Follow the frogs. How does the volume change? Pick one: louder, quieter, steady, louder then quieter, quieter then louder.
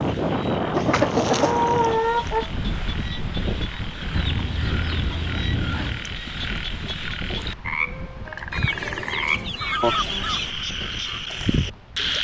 louder.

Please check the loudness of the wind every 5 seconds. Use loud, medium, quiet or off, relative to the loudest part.
loud, medium, quiet.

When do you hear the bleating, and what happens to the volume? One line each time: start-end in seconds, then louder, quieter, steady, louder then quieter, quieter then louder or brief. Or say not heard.
not heard.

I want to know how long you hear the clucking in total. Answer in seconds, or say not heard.
6 s.